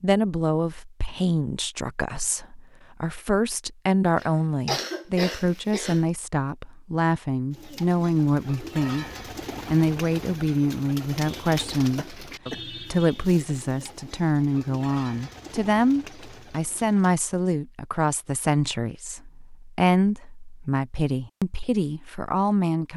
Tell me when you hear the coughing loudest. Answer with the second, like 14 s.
5 s.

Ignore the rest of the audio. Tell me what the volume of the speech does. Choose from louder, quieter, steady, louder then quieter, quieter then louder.
steady.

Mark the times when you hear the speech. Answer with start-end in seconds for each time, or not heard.
0.0-9.1, 9.7-22.9.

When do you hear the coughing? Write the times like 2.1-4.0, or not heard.
4.2-6.0, 11.9-12.7.